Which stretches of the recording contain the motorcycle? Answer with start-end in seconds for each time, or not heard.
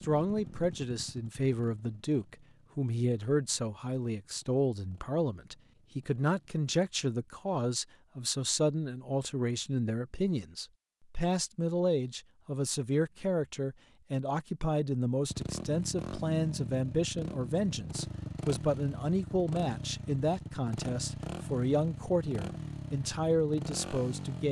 0.0-6.6, 15.2-24.4.